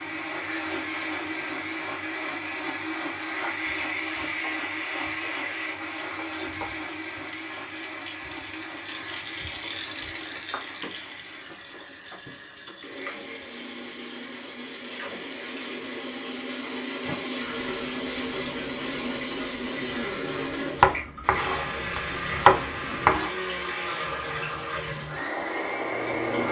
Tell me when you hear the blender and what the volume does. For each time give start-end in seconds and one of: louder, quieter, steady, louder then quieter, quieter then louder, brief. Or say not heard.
0.0-26.4 quieter then louder.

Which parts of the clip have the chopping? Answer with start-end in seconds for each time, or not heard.
20.8-23.3.